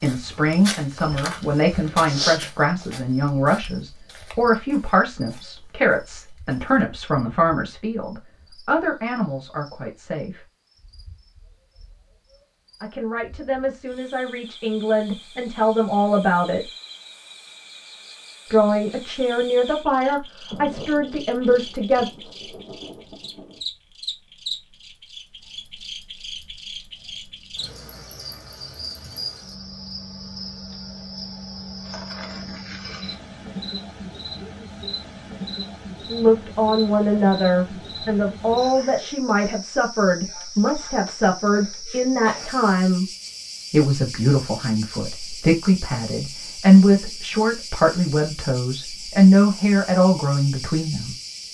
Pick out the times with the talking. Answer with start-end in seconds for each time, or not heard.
0.0-10.4, 12.8-16.6, 18.5-22.1, 36.0-43.0, 43.7-51.1.